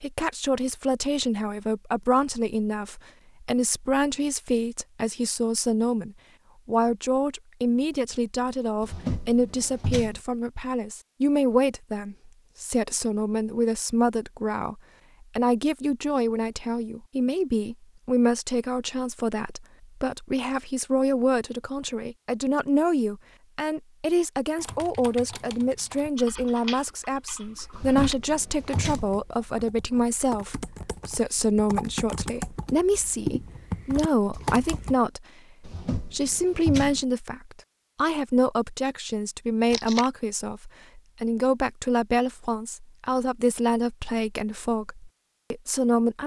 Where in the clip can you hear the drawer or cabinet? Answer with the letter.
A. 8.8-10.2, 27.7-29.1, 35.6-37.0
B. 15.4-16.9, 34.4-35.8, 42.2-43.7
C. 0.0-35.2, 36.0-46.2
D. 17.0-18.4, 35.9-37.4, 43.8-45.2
A.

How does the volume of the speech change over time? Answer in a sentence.
The volume of the speech stays about the same.